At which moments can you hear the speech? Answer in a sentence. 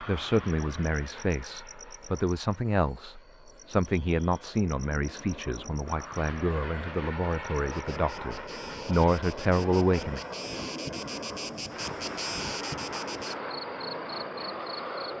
You can hear the speech from 0.0 to 10.2 s.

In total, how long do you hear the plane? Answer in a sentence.
The plane can be heard for 15 seconds in total.